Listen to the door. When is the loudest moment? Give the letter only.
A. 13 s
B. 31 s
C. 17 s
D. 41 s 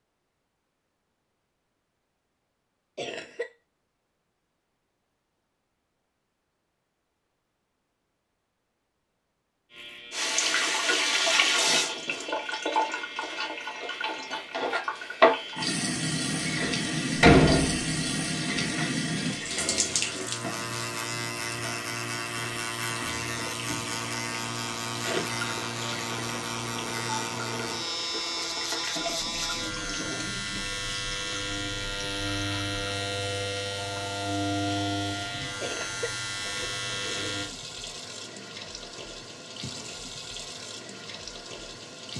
C.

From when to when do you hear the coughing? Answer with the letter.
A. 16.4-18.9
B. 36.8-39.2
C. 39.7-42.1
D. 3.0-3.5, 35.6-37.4
D.